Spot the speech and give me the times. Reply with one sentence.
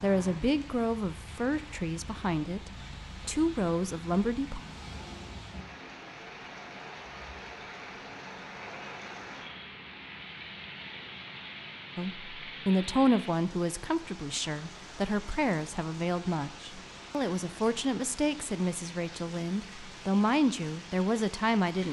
The speech can be heard from 0.0 to 4.6 s and from 11.9 to 21.8 s.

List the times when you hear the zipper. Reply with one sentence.
The zipper can't be heard in this clip.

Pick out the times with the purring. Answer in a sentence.
The purring can't be heard in this clip.